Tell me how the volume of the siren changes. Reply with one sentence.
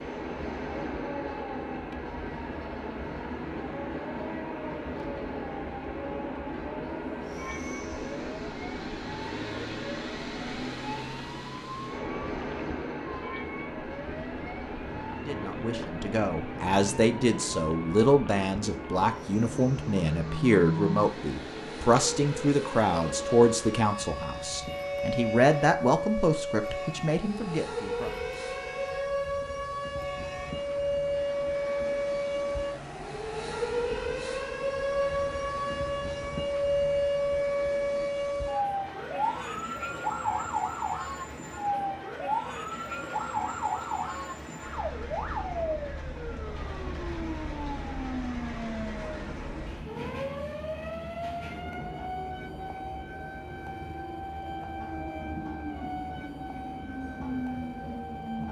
The loudness of the siren goes up, then down.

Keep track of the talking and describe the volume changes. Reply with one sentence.
The loudness of the talking stays about the same.